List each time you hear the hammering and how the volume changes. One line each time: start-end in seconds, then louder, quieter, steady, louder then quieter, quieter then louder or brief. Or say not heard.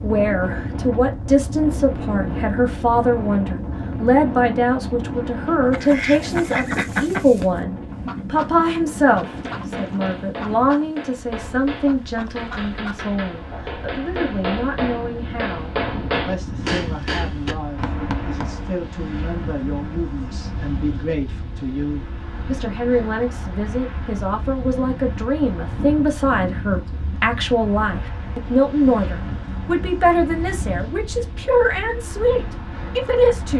9.1-18.7 louder.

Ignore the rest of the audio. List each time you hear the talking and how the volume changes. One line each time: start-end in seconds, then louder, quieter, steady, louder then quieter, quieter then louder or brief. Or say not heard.
0.0-33.5 quieter then louder.